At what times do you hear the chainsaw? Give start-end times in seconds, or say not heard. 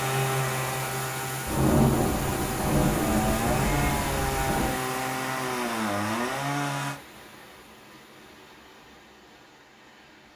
0.0-7.0.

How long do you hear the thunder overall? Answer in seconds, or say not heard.
3 s.